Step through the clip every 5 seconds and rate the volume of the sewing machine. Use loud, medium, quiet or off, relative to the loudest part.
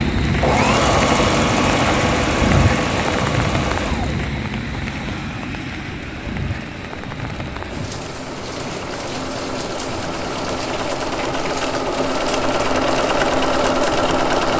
loud, quiet, loud.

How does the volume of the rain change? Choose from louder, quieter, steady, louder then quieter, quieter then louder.
quieter.